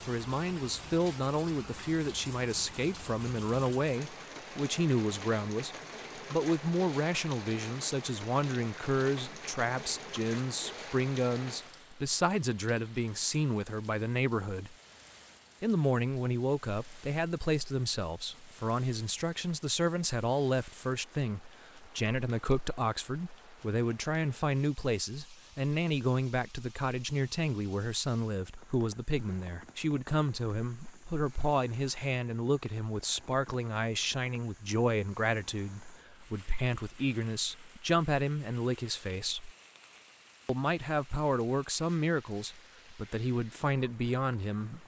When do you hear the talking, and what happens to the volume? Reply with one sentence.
The talking can be heard from 0.1 to 14.8 s, at a steady volume; from 15.6 to 39.5 s, at a steady volume; and from 40.5 to 44.8 s, getting quieter then louder.